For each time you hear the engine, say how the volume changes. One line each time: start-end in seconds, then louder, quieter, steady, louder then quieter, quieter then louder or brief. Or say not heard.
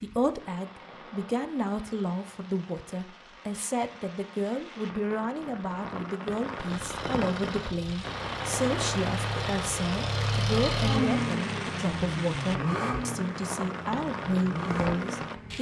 6.5-15.5 louder then quieter.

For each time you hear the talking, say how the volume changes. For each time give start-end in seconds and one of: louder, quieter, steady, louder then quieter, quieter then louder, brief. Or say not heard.
0.0-15.5 steady.